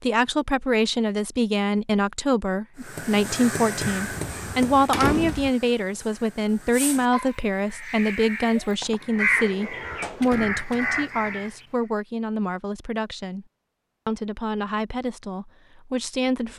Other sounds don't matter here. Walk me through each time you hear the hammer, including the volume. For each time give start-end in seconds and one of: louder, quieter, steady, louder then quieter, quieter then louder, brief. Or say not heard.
not heard.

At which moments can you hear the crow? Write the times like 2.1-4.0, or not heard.
2.8-11.5.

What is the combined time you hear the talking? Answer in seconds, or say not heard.
16 s.